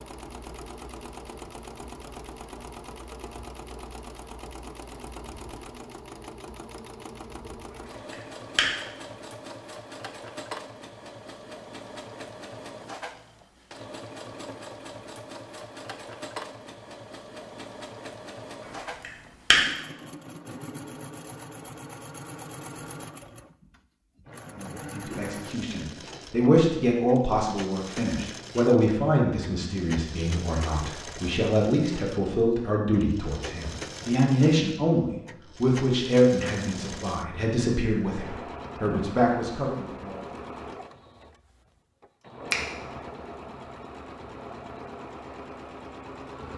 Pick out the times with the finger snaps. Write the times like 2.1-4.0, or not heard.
8.1-8.8, 19.0-19.6.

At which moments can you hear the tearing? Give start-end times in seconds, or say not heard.
not heard.